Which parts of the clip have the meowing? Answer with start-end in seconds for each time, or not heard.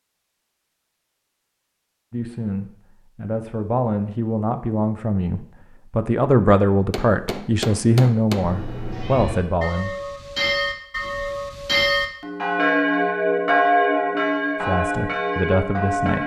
8.4-9.4.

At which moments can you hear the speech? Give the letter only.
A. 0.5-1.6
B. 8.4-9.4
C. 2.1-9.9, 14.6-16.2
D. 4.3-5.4
C.